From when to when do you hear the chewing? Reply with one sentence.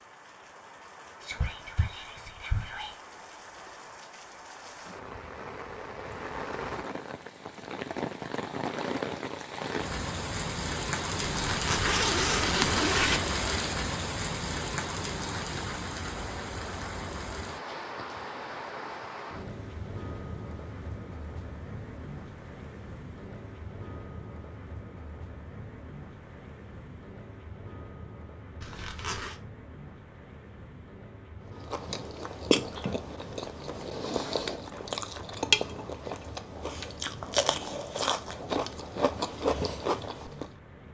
You can hear the chewing from 31.6 to 40.5 s.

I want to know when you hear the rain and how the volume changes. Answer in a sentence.
You can hear the rain from 0.0 to 40.8 s, getting louder then quieter.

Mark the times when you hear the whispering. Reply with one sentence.
You can hear the whispering from 1.2 to 3.0 s.